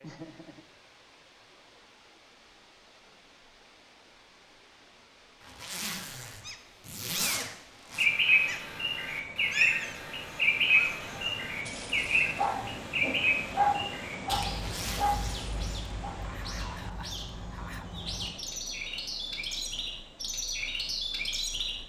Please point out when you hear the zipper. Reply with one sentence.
You can hear the zipper from 5.4 to 8.1 s and from 14.5 to 15.3 s.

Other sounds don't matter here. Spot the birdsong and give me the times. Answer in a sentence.
The birdsong can be heard from 8.0 to 21.8 s.